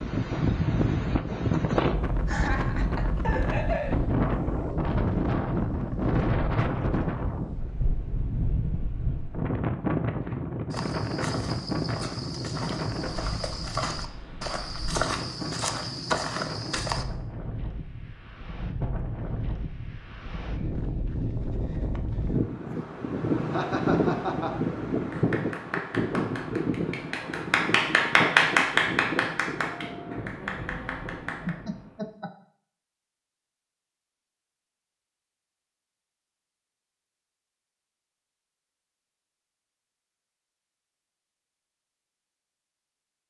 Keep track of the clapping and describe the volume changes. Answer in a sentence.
The volume of the clapping goes up, then down.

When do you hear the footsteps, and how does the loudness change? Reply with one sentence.
You can hear the footsteps from 10.7 to 17.1 s, getting louder.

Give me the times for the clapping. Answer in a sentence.
The clapping can be heard from 25.1 to 31.6 s.